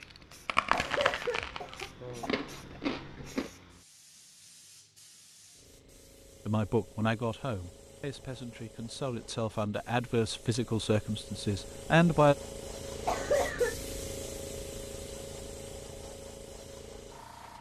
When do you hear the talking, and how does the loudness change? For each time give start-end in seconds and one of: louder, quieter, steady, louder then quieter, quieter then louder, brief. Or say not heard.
6.5-12.3 quieter then louder.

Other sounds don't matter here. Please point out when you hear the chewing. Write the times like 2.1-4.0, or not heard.
0.3-3.5.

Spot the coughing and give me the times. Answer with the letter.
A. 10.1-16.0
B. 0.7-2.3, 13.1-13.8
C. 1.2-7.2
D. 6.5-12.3
B.